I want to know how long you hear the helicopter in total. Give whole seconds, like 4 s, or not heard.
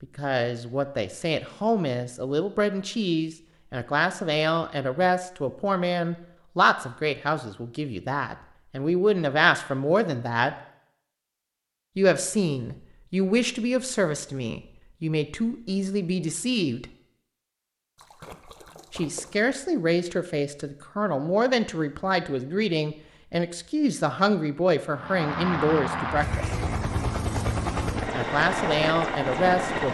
5 s.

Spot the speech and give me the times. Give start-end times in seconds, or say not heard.
0.0-10.6, 11.9-16.9, 18.9-26.5, 28.1-29.8.